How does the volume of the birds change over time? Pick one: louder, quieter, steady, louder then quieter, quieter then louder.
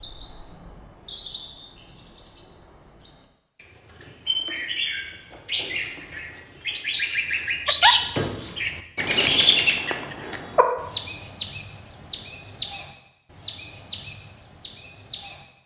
louder then quieter.